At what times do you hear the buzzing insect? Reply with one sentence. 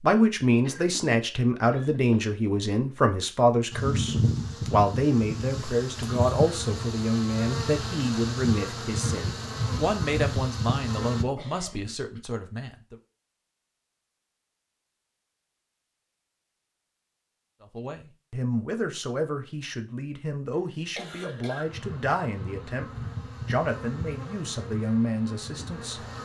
The buzzing insect can be heard from 3.7 to 11.2 s and from 21.6 to 26.1 s.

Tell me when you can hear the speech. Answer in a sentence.
The speech can be heard from 0.0 to 12.9 s and from 17.6 to 26.1 s.